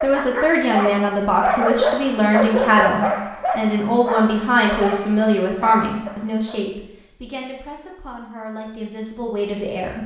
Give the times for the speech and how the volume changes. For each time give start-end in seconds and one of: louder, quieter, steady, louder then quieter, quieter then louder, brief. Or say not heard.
0.0-10.0 quieter.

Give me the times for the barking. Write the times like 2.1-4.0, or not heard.
0.0-6.6.